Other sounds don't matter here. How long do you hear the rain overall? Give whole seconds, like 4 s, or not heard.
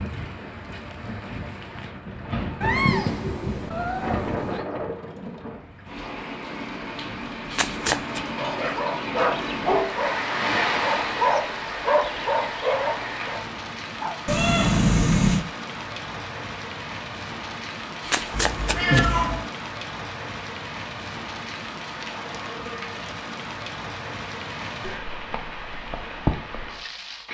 27 s.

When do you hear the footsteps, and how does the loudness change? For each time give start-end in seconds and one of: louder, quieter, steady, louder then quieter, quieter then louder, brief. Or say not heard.
not heard.